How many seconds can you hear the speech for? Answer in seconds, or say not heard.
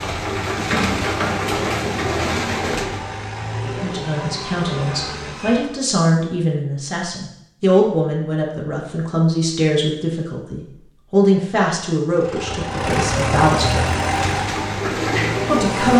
11 s.